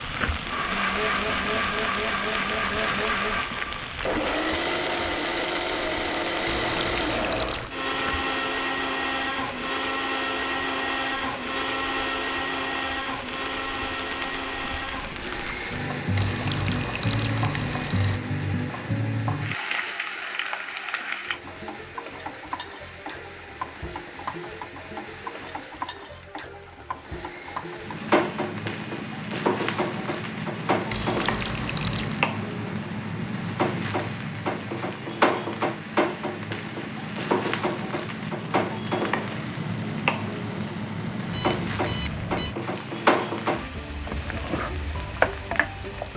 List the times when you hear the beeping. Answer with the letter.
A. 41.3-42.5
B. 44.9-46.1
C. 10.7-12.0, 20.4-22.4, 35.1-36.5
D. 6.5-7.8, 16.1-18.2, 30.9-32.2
A.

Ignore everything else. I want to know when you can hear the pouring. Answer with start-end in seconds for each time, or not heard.
6.5-7.8, 16.1-18.2, 30.9-32.2.